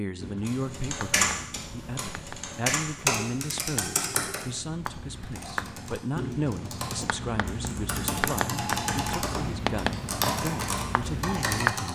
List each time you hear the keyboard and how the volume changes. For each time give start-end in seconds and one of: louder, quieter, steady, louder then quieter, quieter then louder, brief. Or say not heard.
0.5-11.9 quieter then louder.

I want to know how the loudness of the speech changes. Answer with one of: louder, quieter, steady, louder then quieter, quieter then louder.
steady.